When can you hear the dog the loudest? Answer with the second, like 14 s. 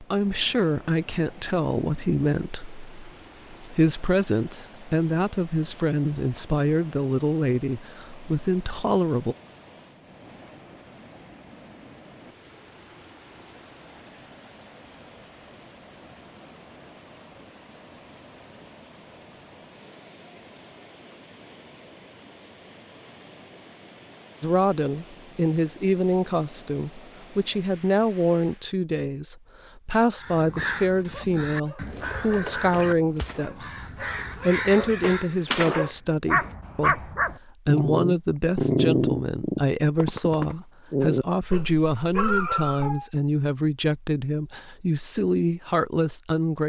39 s.